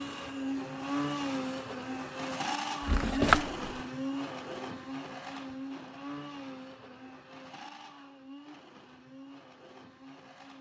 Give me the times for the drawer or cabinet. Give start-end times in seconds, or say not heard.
2.8-3.7.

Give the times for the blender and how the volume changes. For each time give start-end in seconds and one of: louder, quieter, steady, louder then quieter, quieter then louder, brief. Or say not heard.
0.0-10.5 quieter.